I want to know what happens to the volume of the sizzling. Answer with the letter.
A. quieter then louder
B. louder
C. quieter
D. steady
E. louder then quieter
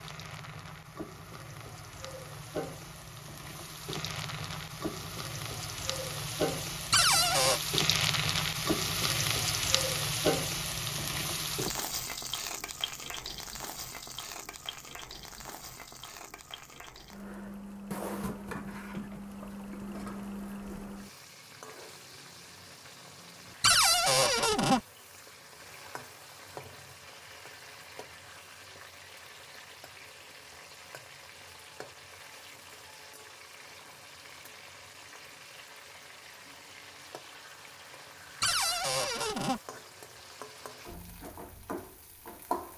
C.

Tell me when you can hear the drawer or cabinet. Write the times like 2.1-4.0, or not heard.
6.9-7.6, 23.6-24.8, 38.4-39.6.